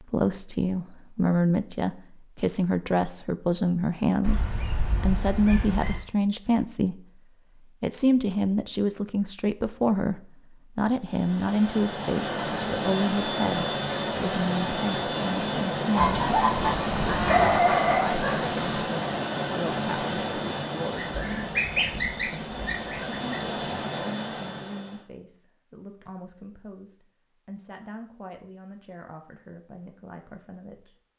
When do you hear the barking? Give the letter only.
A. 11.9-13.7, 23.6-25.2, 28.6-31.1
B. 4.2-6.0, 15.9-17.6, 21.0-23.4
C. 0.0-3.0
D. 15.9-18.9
D.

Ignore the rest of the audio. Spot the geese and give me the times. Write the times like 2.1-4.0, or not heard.
4.2-6.0, 15.9-17.6, 21.0-23.4.